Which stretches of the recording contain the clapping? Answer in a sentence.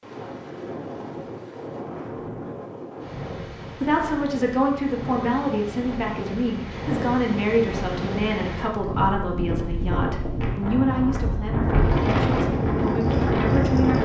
The clapping can't be heard in this clip.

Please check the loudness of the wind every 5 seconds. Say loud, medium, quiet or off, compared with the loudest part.
quiet, medium, loud.